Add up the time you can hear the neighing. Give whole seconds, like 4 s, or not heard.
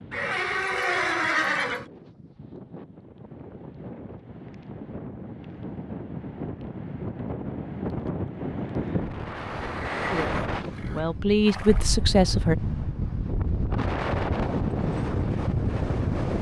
4 s.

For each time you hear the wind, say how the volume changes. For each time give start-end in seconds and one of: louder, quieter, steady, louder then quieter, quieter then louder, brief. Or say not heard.
0.0-16.3 louder.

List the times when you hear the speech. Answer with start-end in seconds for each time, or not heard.
10.1-12.6.